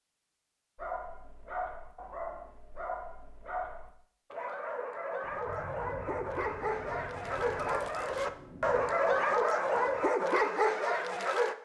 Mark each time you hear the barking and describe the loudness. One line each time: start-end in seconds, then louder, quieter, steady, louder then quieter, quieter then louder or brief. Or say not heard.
0.8-11.6 louder.